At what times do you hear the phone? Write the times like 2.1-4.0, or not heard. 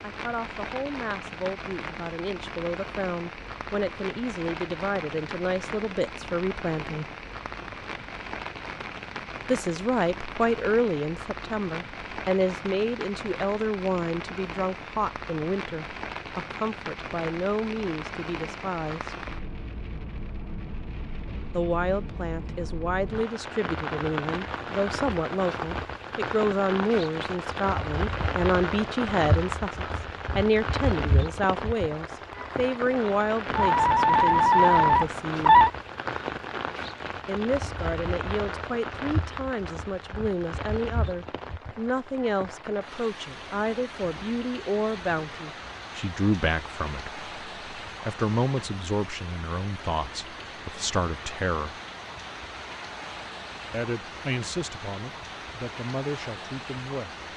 33.5-35.7.